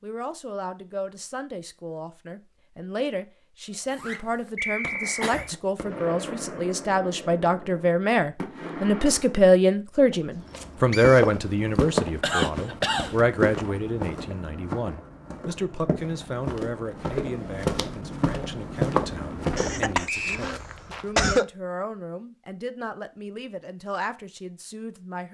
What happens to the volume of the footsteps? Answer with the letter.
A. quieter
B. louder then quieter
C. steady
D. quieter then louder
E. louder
D.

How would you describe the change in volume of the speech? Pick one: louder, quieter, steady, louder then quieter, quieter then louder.
louder then quieter.